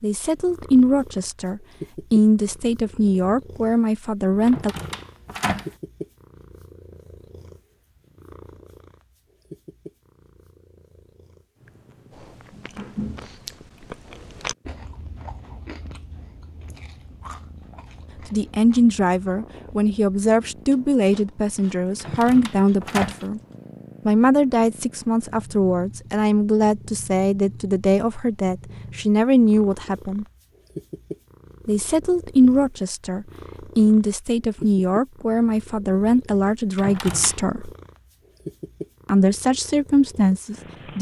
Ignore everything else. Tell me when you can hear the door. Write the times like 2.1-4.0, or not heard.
4.5-5.7, 21.9-23.2, 36.8-37.4.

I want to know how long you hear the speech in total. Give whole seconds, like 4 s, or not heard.
24 s.